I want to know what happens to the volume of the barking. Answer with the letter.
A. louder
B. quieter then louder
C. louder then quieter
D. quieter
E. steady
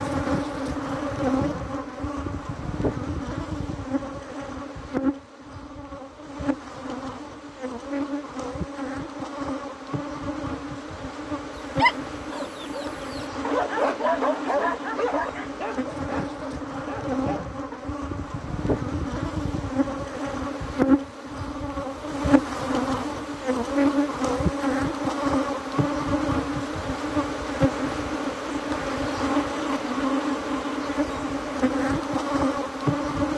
C.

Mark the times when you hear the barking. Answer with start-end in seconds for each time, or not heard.
11.8-17.8.